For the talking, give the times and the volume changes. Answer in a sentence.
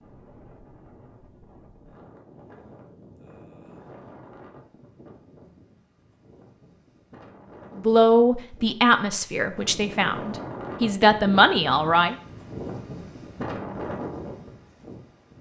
The talking can be heard from 7.8 to 12.2 s, getting quieter then louder.